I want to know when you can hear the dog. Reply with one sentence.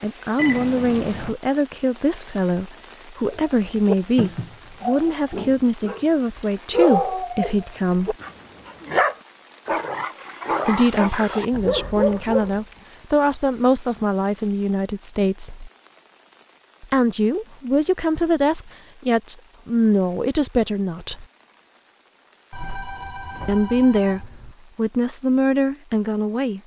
You can hear the dog from 3.3 to 12.6 s.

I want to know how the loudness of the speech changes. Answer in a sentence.
The loudness of the speech stays about the same.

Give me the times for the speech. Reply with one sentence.
The speech can be heard from 0.0 to 8.2 s, from 10.7 to 15.7 s, from 16.8 to 21.2 s and from 23.4 to 26.6 s.